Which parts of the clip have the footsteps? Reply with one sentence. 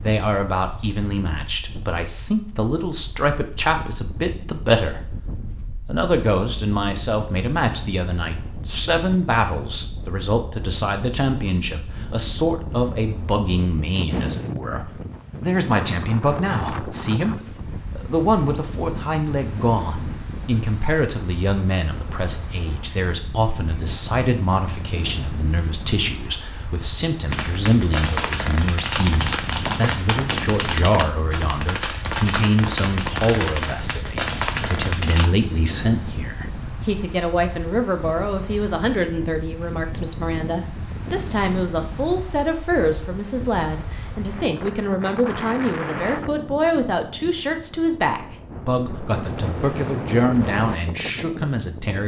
You can't hear the footsteps here.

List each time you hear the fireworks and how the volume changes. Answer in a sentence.
The fireworks can be heard from 27.3 to 35.3 s, at a steady volume.